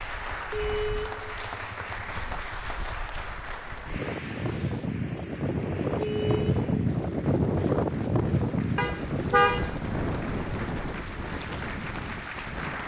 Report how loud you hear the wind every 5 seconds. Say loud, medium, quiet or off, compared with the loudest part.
medium, loud, medium.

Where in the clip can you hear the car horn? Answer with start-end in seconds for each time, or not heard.
0.5-2.4, 6.0-6.8, 8.8-9.9.